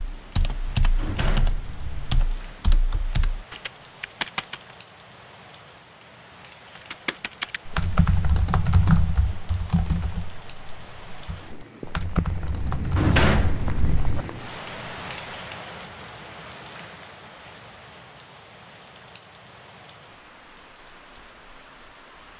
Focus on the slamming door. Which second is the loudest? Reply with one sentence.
The loudest moment of the slamming door is at 13 seconds.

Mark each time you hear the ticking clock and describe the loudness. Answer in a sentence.
The ticking clock can't be heard in this clip.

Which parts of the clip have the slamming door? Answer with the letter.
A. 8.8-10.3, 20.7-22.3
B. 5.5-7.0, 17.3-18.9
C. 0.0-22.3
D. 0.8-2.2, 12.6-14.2
D.